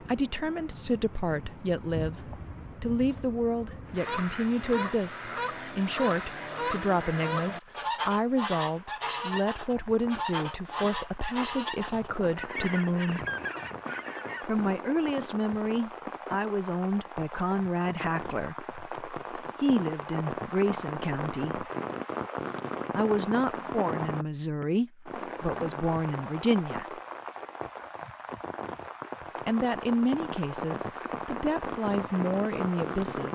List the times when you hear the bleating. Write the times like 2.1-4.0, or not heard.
not heard.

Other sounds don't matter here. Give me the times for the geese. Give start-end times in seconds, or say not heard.
4.0-14.5.